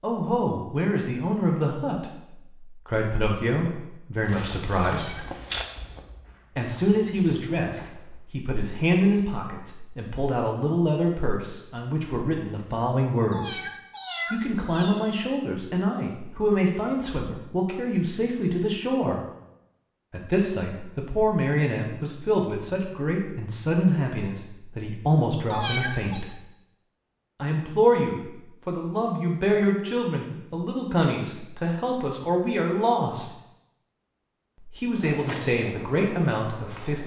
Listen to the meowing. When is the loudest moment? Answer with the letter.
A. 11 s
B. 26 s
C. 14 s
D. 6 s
B.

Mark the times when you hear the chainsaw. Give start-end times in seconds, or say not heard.
not heard.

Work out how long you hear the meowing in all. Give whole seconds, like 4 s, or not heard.
3 s.